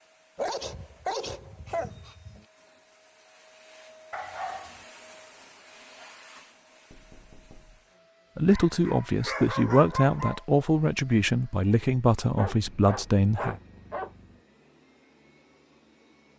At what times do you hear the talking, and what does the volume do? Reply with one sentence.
The talking can be heard from 8.3 to 13.6 s, at a steady volume.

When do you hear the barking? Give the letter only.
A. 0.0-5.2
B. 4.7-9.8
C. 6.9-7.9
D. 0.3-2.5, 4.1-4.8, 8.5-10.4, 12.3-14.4
D.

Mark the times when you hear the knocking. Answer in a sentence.
You can hear the knocking from 6.9 to 7.9 s.